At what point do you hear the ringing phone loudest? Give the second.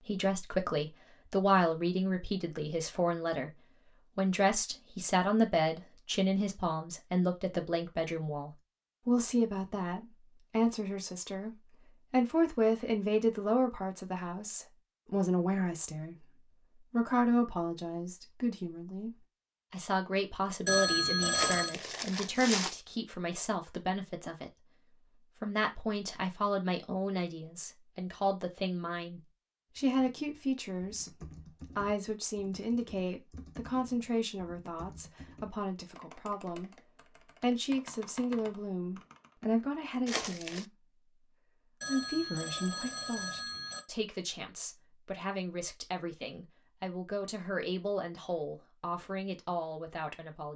21 s.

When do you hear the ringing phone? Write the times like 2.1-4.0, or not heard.
20.6-21.8, 41.8-43.8.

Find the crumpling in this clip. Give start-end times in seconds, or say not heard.
21.3-22.8, 40.0-40.6.